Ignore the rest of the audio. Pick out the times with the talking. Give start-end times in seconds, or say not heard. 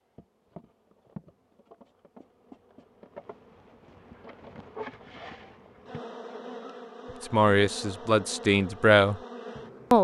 7.2-9.2.